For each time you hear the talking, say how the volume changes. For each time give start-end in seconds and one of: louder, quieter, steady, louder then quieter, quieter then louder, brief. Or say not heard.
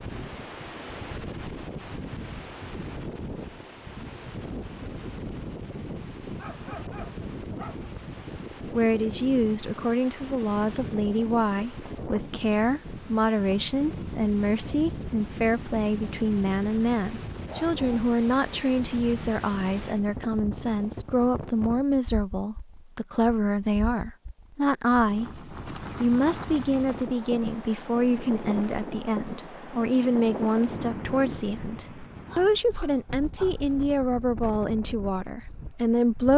8.7-36.3 steady.